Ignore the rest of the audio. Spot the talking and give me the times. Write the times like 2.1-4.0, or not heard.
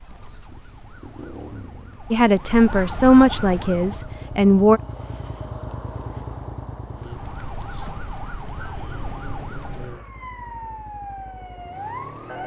2.1-4.8.